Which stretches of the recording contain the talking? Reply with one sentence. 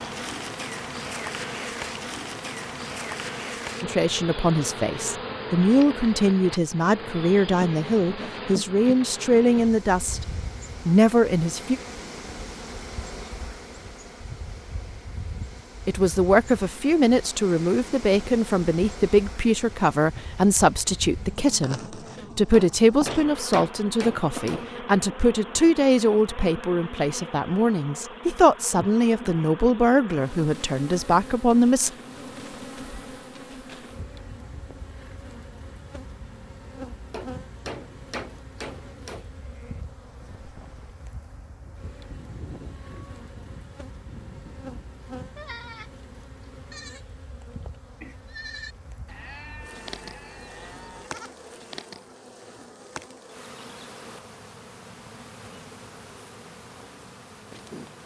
The talking can be heard from 3.8 to 10.2 s, from 10.8 to 11.8 s and from 15.8 to 31.9 s.